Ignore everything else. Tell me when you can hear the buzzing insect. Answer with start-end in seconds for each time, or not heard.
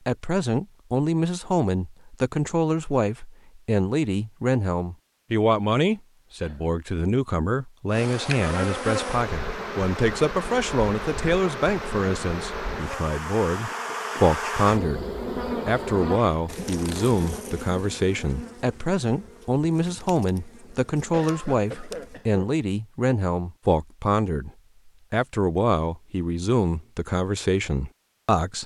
7.9-22.2.